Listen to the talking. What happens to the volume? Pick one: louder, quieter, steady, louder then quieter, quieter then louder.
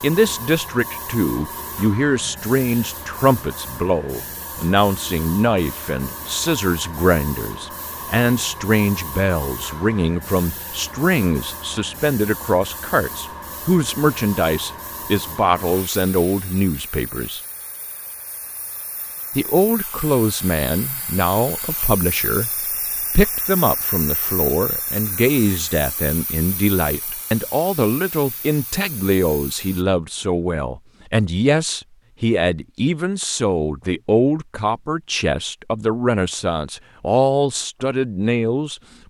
steady.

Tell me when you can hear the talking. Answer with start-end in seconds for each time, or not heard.
0.0-17.4, 19.4-22.5, 23.1-39.0.